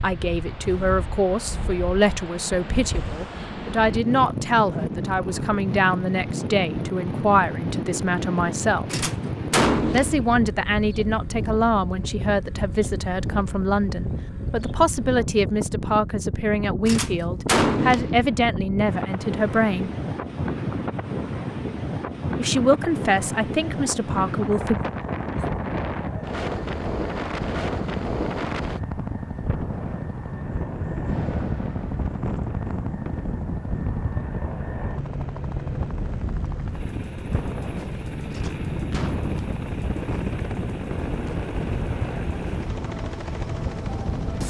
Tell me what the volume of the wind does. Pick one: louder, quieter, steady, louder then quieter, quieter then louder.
steady.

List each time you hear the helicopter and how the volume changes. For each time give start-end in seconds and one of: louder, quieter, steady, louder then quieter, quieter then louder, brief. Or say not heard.
24.6-44.4 steady.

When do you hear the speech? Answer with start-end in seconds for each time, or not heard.
0.0-9.1, 9.9-19.9, 22.4-24.8.